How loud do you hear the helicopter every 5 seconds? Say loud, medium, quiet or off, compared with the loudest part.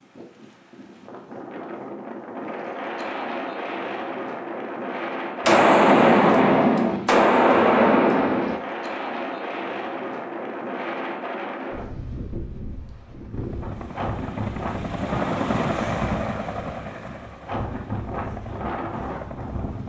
off, off, medium, loud.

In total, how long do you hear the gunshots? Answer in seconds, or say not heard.
3 s.